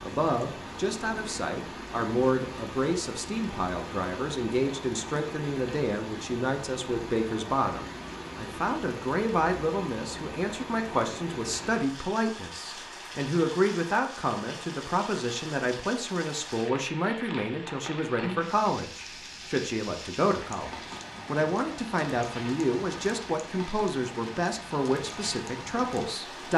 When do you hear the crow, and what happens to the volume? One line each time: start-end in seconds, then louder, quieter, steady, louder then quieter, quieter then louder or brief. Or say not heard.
not heard.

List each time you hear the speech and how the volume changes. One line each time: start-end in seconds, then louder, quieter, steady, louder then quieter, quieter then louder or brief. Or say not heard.
0.0-26.5 steady.